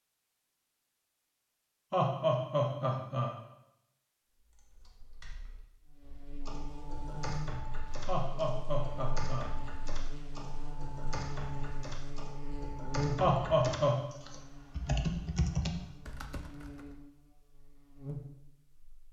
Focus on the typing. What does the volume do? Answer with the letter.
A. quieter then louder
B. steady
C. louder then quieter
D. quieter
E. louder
E.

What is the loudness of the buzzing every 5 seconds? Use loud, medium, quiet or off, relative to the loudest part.
off, medium, loud, medium.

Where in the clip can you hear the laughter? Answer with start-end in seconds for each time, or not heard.
1.9-3.4, 8.1-9.5, 13.2-14.0.